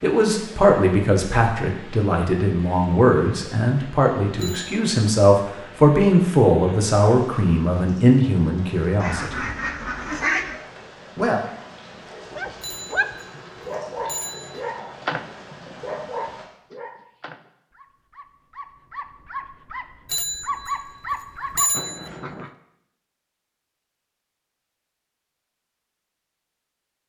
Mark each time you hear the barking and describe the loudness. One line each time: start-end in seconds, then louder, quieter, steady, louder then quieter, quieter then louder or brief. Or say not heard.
12.3-22.5 quieter then louder.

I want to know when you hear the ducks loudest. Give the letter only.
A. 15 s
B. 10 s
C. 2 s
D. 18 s
B.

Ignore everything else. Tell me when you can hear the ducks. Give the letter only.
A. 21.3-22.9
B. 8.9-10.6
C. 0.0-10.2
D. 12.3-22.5
B.